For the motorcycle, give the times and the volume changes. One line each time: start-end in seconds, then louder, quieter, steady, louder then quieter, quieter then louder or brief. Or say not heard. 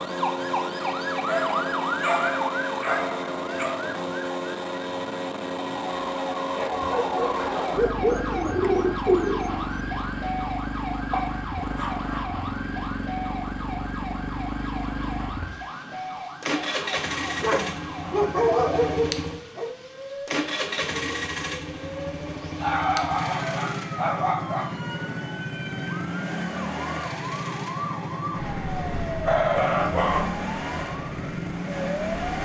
0.0-32.4 steady.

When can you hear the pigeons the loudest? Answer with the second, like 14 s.
9 s.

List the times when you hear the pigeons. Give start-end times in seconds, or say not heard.
8.0-9.7.